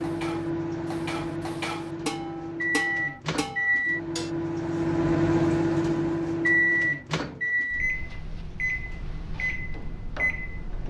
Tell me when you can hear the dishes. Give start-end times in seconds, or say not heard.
0.0-4.3.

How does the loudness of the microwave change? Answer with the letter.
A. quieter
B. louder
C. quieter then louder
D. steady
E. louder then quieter
E.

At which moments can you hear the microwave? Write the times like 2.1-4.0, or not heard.
0.0-10.8.